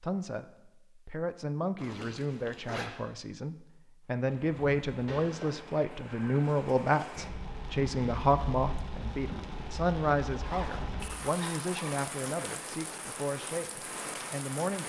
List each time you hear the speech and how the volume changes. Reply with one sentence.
The speech can be heard from 0.0 to 14.8 s, getting louder then quieter.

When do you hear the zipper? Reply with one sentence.
You can hear the zipper from 1.8 to 2.9 s, from 5.0 to 5.7 s and from 10.4 to 12.1 s.